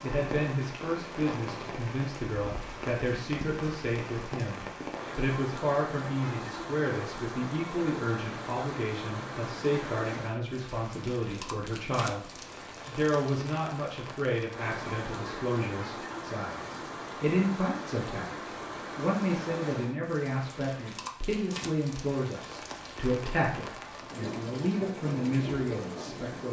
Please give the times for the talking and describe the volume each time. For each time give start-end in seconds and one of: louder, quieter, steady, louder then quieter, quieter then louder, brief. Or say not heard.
0.0-26.4 steady.